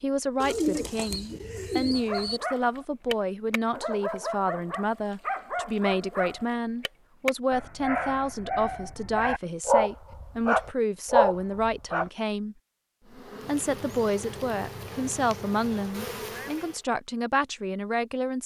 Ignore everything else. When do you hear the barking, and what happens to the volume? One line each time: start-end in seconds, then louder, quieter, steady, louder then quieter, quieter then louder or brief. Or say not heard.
1.9-12.1 louder.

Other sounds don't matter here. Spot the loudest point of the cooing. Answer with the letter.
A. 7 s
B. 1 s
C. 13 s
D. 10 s
B.